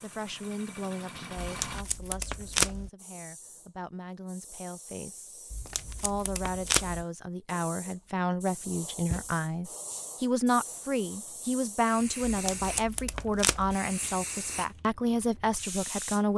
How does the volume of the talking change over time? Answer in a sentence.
The loudness of the talking goes up.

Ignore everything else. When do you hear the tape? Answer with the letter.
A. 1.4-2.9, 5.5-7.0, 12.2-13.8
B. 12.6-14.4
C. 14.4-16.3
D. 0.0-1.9
A.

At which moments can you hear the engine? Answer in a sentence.
You can hear the engine from 0.0 to 1.9 s.